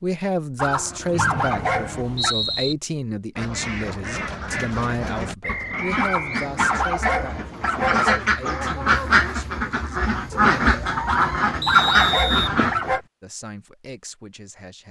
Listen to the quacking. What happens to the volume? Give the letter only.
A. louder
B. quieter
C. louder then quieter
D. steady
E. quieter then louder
A.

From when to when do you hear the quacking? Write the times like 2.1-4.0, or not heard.
3.4-12.9.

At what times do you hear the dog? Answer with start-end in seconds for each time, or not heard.
0.6-2.4, 6.0-8.2, 11.1-13.0.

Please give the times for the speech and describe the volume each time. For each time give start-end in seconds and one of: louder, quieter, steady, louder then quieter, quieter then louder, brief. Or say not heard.
0.0-10.8 quieter
13.2-14.8 brief.